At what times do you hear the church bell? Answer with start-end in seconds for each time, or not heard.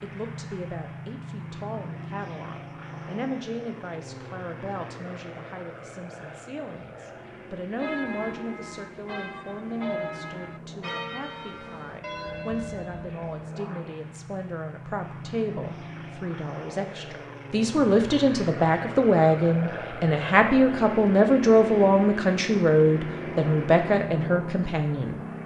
7.8-13.3.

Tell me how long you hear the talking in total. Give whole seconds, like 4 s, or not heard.
25 s.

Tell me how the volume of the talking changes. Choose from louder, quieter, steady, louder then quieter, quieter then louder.
louder.